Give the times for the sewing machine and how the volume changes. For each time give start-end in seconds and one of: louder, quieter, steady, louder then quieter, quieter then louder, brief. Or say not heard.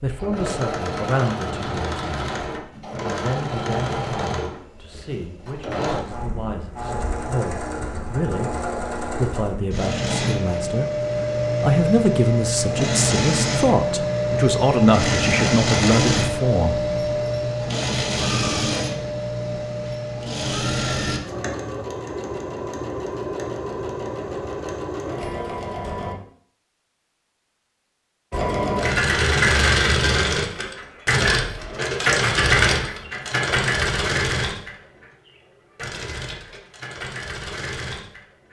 0.0-26.1 louder then quieter
28.3-38.4 quieter.